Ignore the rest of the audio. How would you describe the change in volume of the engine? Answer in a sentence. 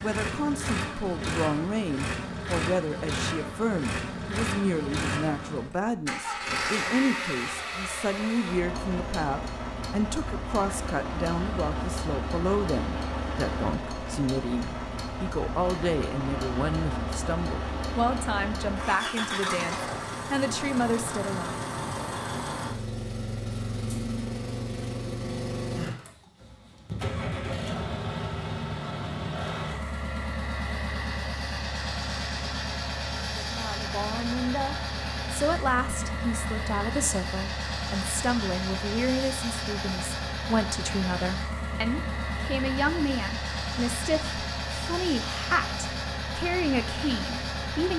The loudness of the engine stays about the same.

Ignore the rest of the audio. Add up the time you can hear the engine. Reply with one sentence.
The engine can be heard for 48 seconds in total.